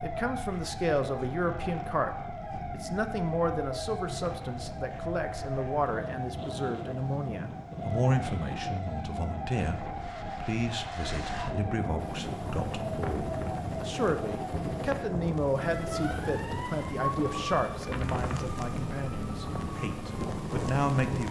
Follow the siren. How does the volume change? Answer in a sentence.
The volume of the siren stays about the same.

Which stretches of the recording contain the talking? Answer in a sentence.
The talking can be heard from 0.0 to 21.2 s.